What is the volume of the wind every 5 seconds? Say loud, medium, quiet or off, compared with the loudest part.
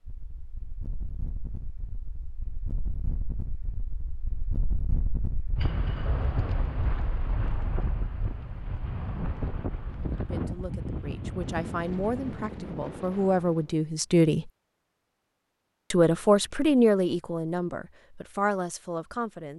medium, loud, loud, off.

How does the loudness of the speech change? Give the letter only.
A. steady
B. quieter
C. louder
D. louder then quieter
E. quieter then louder
D.